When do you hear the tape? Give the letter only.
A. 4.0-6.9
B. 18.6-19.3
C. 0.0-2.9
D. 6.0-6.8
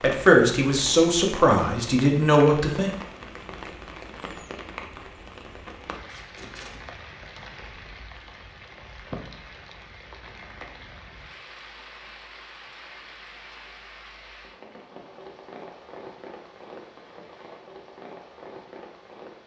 D.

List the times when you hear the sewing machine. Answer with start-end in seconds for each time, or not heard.
not heard.